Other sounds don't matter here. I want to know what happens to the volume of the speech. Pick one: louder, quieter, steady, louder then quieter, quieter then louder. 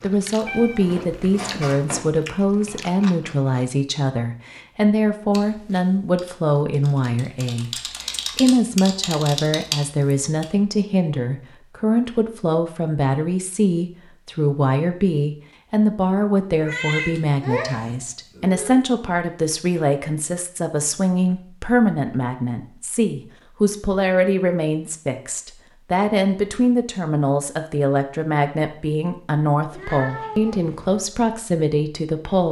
steady.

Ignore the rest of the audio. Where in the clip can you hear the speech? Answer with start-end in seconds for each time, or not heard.
0.0-32.4.